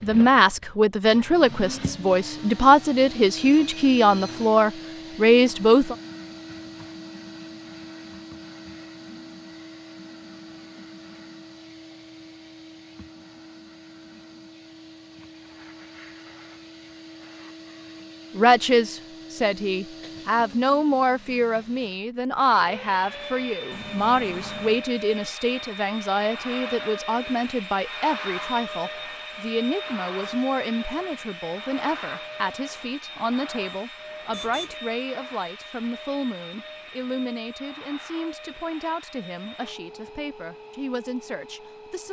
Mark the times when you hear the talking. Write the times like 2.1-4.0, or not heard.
0.0-6.0, 18.4-42.0.